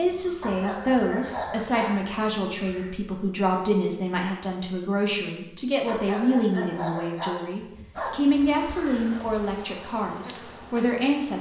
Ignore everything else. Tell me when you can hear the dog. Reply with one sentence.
You can hear the dog from 0.4 to 1.9 s and from 5.8 to 8.4 s.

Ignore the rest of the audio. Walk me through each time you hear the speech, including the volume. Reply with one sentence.
You can hear the speech from 0.0 to 11.3 s, at a steady volume.